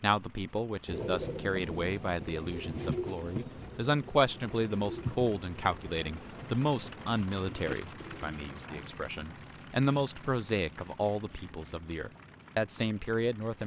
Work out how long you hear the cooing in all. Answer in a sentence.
You can hear the cooing for 8 seconds altogether.